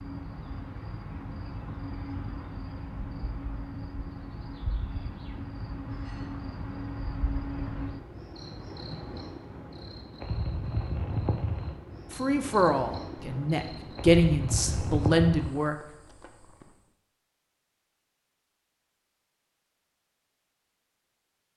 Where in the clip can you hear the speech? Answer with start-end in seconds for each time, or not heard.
12.1-15.8.